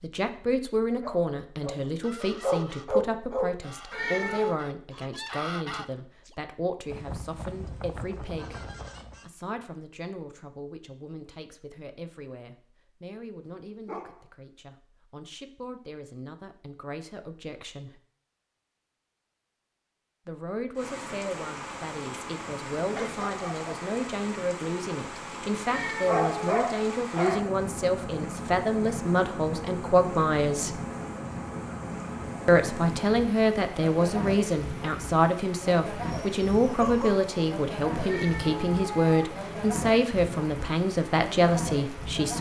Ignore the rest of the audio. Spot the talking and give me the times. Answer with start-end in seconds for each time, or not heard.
0.0-18.0, 20.2-30.8, 32.5-42.3.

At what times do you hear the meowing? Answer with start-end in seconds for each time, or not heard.
3.9-4.6, 25.6-26.6, 38.0-39.4.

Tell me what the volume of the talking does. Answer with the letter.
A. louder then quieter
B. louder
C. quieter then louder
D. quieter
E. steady
C.